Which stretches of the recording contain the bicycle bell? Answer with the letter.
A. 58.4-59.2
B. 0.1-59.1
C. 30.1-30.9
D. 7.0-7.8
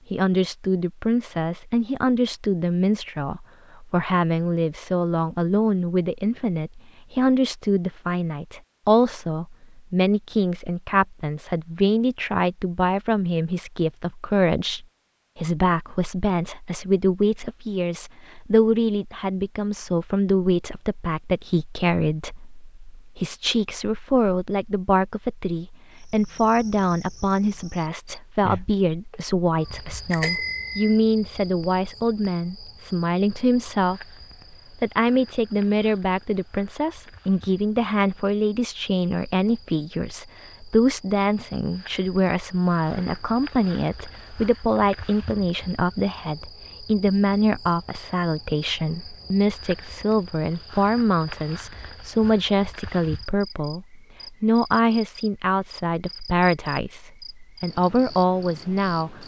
C.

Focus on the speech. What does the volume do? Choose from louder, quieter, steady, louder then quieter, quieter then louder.
steady.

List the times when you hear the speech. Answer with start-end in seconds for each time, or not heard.
0.1-59.1.